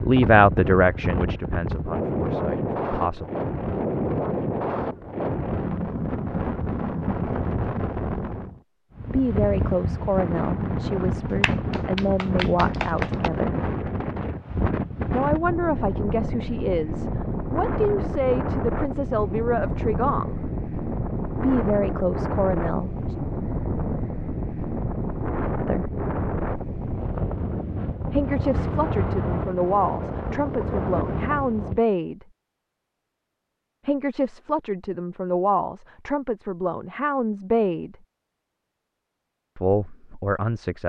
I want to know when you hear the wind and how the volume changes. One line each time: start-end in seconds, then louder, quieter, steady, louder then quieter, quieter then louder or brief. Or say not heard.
0.0-31.8 steady.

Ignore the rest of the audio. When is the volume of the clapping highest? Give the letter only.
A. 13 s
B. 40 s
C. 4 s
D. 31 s
A.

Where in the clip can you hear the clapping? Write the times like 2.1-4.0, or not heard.
11.3-13.3.